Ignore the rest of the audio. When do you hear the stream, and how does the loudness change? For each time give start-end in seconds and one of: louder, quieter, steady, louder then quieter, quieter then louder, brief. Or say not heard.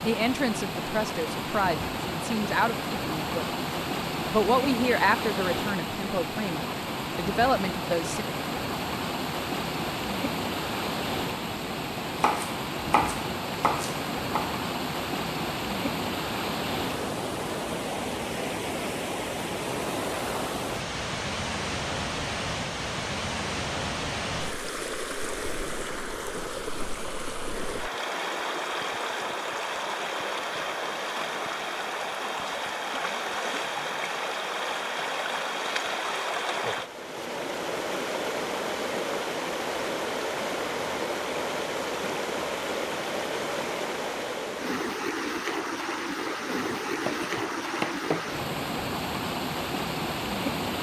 0.0-50.7 steady.